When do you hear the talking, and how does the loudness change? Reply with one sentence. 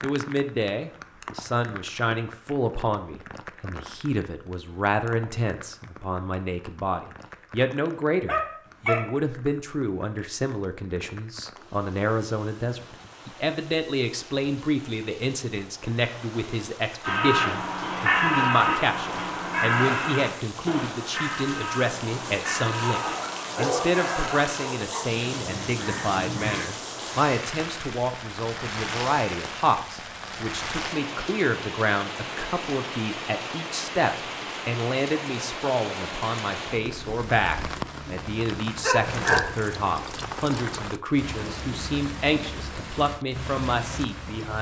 The talking can be heard from 0.0 to 44.5 s, at a steady volume.